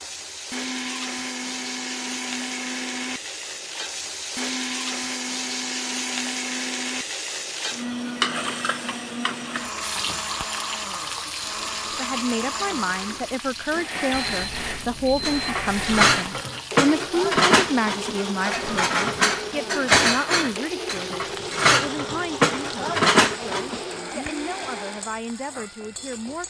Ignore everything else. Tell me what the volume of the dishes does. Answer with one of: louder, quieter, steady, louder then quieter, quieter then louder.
steady.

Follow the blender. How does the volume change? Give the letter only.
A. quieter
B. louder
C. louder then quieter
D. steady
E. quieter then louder
D.